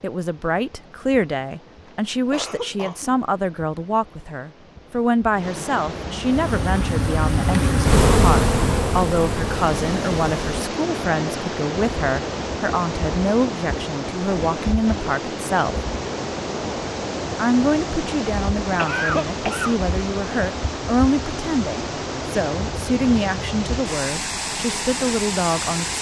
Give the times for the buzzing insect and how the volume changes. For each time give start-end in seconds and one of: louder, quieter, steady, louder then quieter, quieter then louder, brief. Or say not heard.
6.2-10.4 louder then quieter.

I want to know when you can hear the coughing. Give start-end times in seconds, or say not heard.
2.3-3.1, 18.8-19.8.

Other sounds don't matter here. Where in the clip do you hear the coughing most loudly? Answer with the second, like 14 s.
19 s.